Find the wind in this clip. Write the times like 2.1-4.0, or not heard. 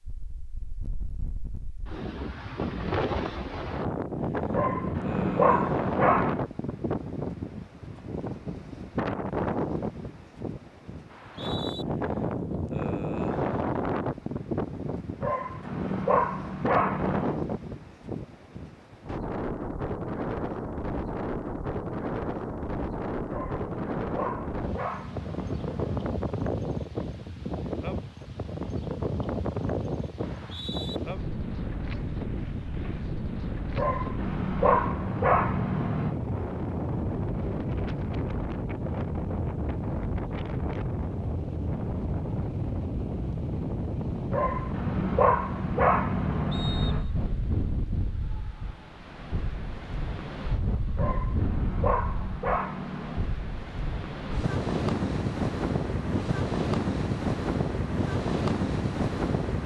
0.0-59.6.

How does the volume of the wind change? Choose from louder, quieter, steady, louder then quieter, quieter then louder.
steady.